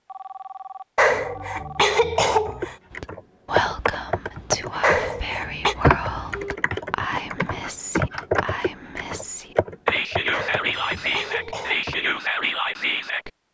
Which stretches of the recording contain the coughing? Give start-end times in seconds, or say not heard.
0.9-2.8, 4.8-5.8, 10.3-11.8.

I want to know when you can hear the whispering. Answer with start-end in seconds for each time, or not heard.
2.9-13.3.